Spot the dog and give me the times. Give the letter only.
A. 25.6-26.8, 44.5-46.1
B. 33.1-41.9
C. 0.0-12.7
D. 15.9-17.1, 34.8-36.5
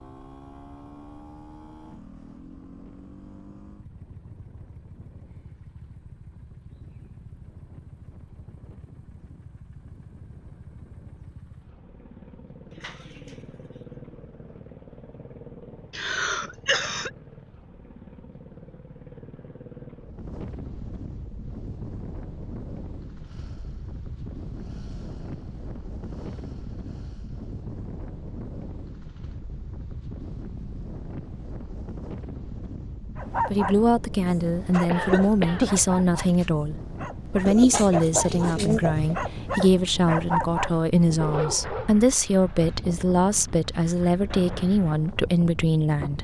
B.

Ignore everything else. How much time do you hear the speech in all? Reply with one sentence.
You can hear the speech for 13 seconds altogether.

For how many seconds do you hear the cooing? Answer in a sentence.
You can hear the cooing for 3 seconds altogether.